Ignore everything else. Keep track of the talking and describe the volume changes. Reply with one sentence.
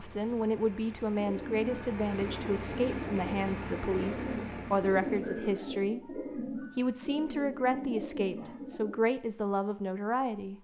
The volume of the talking stays about the same.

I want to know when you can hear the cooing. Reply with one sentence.
The cooing can be heard from 1.1 to 8.9 s.